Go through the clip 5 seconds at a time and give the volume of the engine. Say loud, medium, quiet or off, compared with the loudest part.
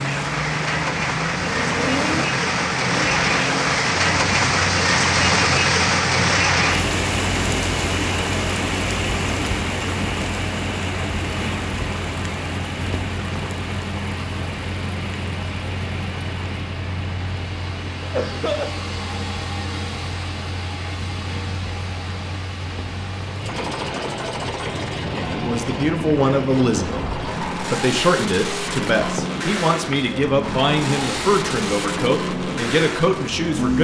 loud, medium, medium, medium, medium, loud, loud.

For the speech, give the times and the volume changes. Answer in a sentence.
The speech can be heard from 25.0 to 33.7 s, at a steady volume.